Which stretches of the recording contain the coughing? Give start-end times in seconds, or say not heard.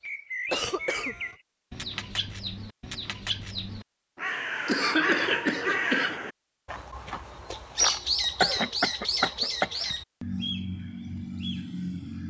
0.5-1.4, 4.7-6.2, 8.2-9.7.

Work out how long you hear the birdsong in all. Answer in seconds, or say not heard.
12 s.